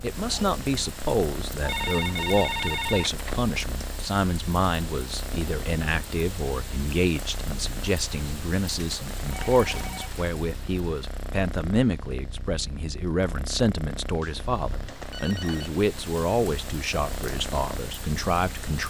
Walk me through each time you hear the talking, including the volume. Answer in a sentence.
The talking can be heard from 0.0 to 18.8 s, at a steady volume.